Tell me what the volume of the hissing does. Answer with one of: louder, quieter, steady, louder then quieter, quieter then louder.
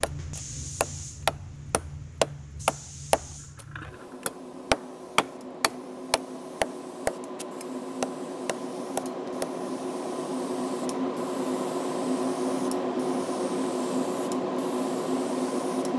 louder.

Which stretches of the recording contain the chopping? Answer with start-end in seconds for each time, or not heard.
0.0-9.5.